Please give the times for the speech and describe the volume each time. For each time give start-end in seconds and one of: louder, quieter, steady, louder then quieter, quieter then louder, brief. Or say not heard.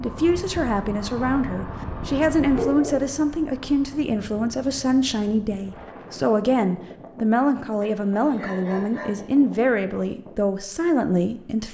0.0-11.7 steady.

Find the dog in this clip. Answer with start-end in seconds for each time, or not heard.
2.0-3.1, 7.8-9.3.